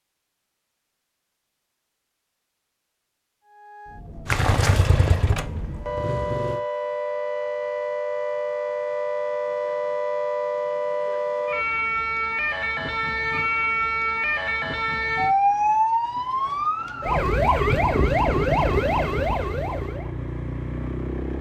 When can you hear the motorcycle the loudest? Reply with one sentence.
The volume of the motorcycle peaks at 5 seconds.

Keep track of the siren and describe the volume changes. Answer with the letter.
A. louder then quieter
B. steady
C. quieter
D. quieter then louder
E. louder
E.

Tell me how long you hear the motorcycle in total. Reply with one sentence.
You can hear the motorcycle for 6 seconds altogether.